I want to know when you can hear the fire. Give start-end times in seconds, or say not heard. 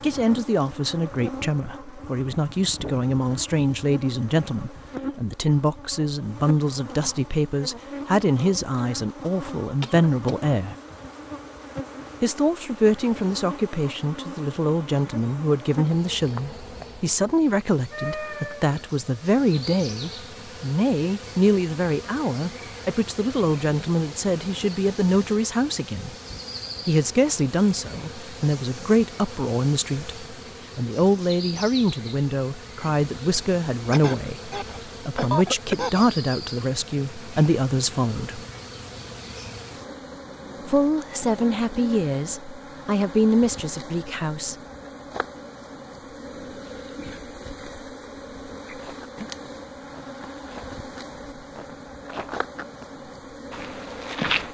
not heard.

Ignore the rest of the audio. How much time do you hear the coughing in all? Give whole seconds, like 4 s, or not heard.
3 s.